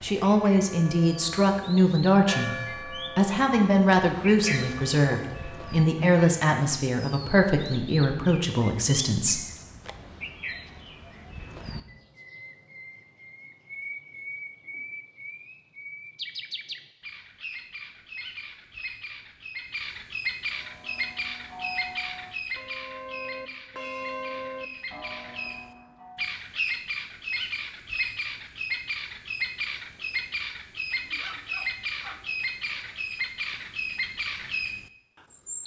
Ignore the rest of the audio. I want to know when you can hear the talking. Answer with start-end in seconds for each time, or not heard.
0.0-2.5, 3.1-9.4.